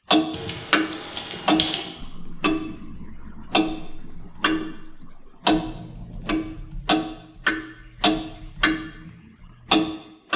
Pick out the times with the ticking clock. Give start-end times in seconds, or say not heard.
0.1-4.8, 5.5-10.3.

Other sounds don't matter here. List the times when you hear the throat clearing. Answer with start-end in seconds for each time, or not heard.
not heard.